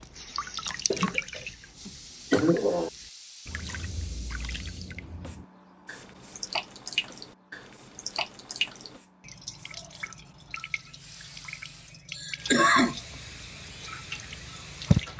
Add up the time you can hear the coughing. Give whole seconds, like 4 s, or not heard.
3 s.